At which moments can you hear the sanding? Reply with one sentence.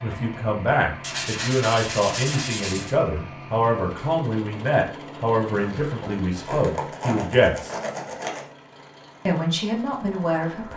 The sanding can be heard from 1.0 to 3.0 s and from 5.5 to 8.4 s.